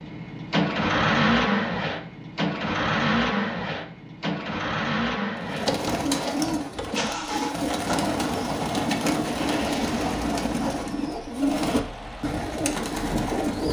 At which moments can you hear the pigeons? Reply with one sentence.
The pigeons can be heard from 5.4 to 13.6 s.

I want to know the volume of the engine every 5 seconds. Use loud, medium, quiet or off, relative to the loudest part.
loud, medium, quiet.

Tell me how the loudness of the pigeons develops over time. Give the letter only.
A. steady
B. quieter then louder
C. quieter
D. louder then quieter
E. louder
A.